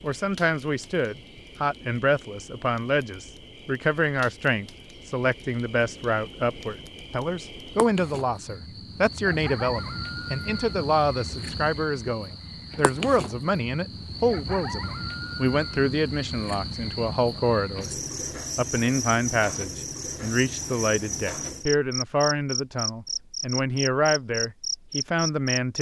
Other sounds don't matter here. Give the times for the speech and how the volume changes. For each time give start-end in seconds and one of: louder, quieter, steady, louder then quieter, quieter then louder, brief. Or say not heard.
0.0-25.7 steady.